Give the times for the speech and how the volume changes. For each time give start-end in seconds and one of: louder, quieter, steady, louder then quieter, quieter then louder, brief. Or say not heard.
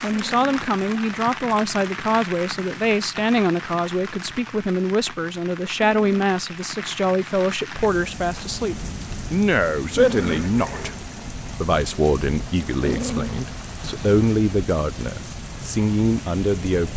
0.0-16.9 steady.